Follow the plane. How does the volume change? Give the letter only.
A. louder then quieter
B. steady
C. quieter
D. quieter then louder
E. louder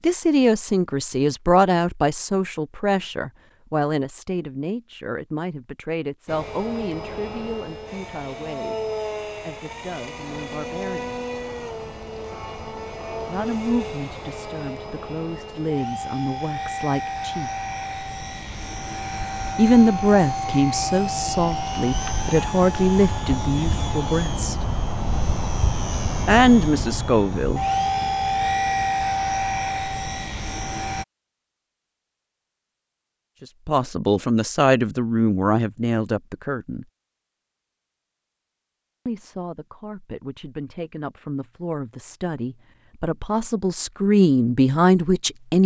E.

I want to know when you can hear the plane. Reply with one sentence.
The plane can be heard from 6.2 to 31.1 s.